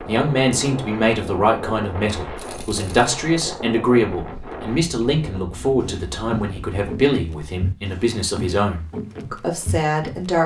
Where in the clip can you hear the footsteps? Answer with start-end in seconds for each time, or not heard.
5.8-10.3.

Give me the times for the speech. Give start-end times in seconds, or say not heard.
0.1-10.4.